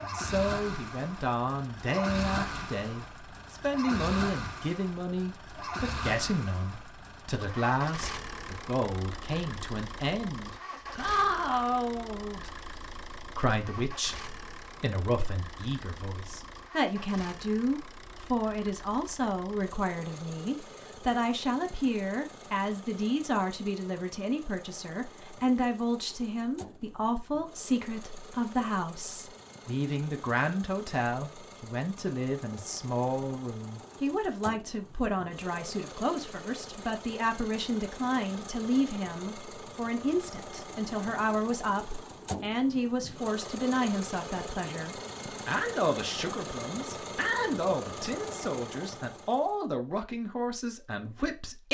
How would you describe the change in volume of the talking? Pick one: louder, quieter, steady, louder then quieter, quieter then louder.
steady.